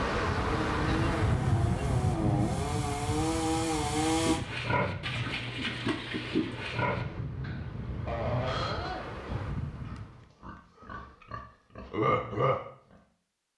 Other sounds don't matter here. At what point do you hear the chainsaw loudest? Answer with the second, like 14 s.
4 s.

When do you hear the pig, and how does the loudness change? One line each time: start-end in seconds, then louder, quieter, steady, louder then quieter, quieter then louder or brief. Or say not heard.
4.0-12.6 quieter then louder.